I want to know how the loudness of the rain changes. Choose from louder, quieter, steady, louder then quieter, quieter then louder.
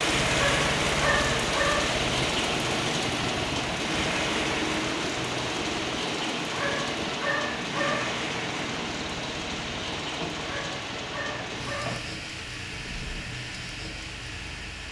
quieter.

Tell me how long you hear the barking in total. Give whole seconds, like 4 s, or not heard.
5 s.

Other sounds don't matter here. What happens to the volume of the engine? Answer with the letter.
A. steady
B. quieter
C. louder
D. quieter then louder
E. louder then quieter
B.